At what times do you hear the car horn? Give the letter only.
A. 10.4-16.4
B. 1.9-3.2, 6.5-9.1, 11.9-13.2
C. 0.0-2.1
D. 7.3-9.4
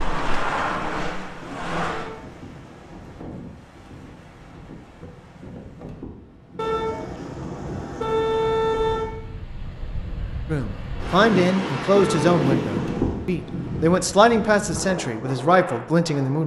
B.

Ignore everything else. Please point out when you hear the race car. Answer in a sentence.
The race car can be heard from 0.0 to 2.1 s.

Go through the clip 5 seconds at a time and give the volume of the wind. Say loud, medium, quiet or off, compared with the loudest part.
quiet, quiet, loud, medium.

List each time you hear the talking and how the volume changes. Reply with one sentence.
You can hear the talking from 10.4 to 16.4 s, at a steady volume.